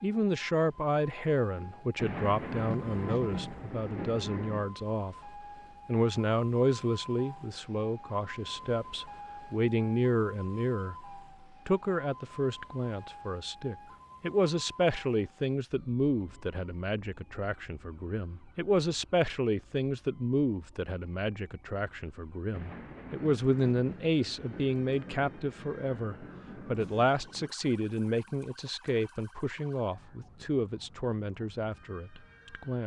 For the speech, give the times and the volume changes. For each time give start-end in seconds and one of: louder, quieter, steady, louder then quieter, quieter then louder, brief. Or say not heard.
0.0-32.8 steady.